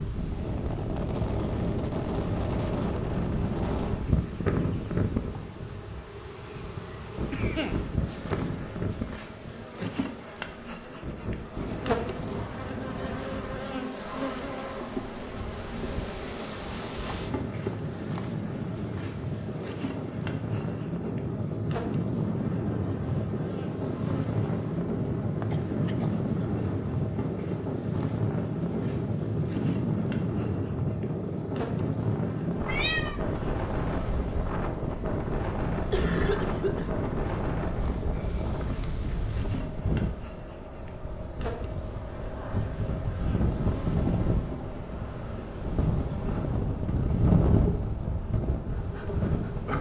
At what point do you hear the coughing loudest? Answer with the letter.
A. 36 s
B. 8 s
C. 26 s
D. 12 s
A.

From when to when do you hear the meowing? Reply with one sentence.
You can hear the meowing from 32.6 to 33.5 s.